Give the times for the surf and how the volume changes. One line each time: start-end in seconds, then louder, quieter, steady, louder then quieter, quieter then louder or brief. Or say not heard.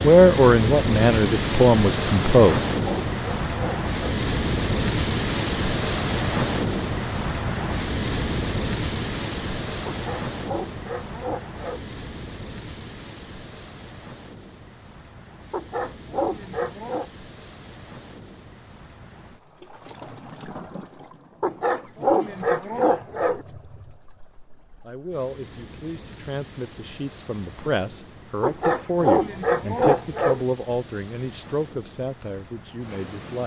0.0-33.4 quieter.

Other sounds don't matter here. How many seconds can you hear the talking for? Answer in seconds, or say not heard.
11 s.